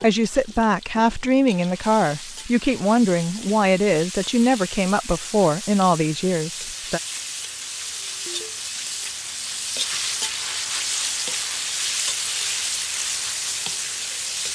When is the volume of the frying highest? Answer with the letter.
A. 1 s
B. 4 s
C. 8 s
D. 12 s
D.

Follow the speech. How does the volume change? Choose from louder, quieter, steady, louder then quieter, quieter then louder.
steady.